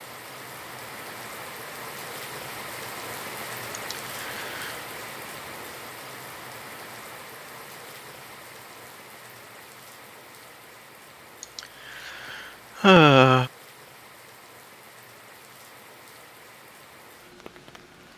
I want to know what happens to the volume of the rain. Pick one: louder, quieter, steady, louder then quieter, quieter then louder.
quieter.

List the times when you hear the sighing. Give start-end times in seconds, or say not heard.
3.7-4.8, 11.4-13.5.